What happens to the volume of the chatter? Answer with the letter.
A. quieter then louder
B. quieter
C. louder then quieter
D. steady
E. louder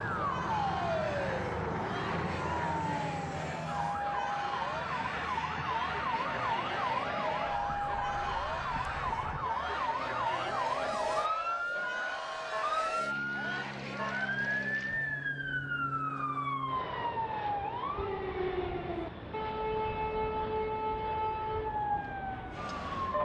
D.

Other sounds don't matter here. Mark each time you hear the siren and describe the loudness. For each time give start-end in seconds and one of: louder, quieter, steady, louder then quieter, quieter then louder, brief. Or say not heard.
0.0-23.1 steady.